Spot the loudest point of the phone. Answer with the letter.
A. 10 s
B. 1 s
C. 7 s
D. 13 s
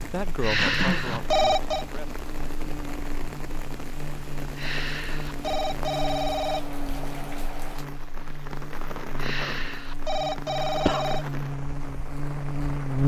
B.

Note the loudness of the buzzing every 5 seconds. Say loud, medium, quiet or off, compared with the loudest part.
medium, medium, loud.